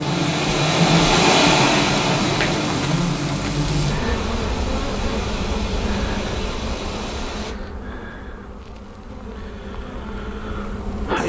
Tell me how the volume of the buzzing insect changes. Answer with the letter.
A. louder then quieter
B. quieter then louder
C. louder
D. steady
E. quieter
E.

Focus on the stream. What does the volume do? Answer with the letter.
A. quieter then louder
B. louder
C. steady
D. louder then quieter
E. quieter
E.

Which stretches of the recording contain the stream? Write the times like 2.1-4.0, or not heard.
0.0-7.5.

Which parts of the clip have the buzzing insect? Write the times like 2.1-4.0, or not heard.
0.0-11.2.